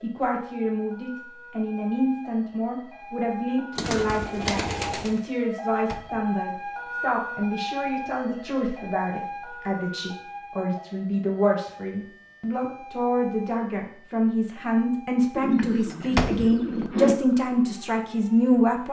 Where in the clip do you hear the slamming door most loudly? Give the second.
16 s.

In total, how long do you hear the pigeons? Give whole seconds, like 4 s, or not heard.
3 s.